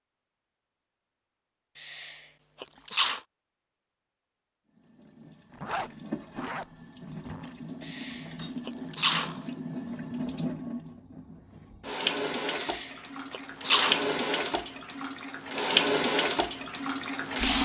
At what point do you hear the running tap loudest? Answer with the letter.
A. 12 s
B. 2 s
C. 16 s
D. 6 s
C.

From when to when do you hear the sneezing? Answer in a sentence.
You can hear the sneezing from 1.8 to 3.2 s, from 7.8 to 9.4 s and from 12.5 to 14.1 s.